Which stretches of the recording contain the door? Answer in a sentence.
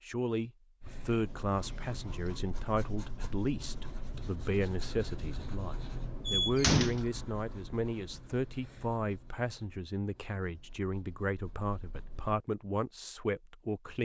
You can hear the door from 6.2 to 7.0 s.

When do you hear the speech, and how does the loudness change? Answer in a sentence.
The speech can be heard from 0.0 to 14.0 s, at a steady volume.